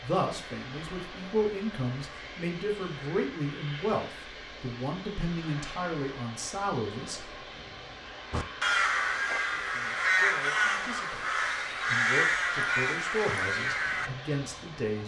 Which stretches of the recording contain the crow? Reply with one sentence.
The crow can be heard from 8.3 to 14.1 s.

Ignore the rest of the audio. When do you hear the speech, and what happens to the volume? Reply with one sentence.
The speech can be heard from 0.0 to 7.6 s, at a steady volume; and from 9.4 to 15.0 s, getting louder.